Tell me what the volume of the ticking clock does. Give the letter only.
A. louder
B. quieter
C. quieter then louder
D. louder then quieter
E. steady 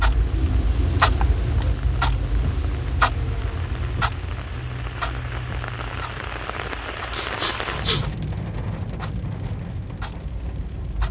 B.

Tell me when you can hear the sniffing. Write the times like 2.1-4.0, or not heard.
7.1-8.1.